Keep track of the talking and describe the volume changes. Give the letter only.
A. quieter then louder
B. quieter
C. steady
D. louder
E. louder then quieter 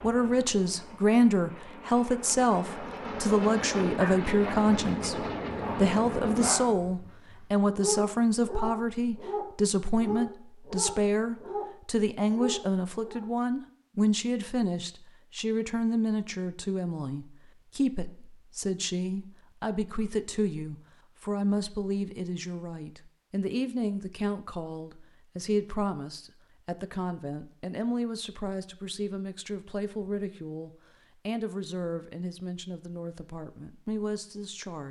B.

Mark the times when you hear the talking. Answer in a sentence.
You can hear the talking from 0.0 to 34.8 s.